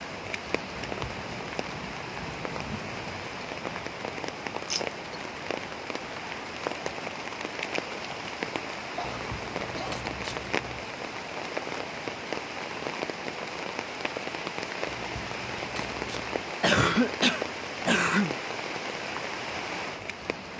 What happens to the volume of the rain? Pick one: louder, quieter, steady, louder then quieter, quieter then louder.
steady.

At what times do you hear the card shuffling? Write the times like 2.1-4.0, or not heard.
0.8-1.4, 9.0-10.9, 14.8-16.4.